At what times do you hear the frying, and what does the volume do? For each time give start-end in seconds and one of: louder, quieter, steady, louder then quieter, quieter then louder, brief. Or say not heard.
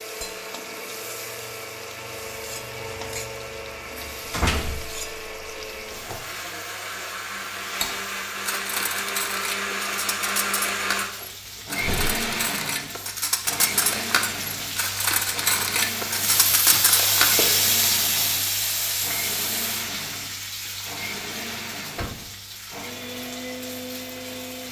0.0-24.6 louder then quieter.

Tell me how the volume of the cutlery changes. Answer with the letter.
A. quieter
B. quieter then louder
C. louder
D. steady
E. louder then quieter
C.